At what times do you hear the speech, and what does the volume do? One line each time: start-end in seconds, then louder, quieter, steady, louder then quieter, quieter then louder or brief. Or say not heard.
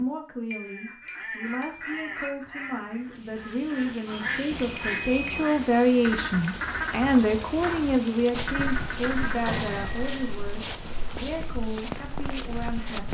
0.0-13.1 louder then quieter.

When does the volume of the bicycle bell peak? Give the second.
5 s.